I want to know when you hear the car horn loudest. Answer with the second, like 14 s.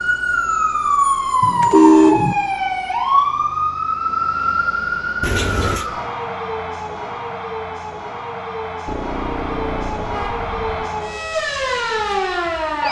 2 s.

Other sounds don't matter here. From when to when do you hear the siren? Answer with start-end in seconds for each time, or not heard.
0.0-12.8.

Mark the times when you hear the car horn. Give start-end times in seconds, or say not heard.
1.4-2.4, 5.2-5.8, 8.8-10.9.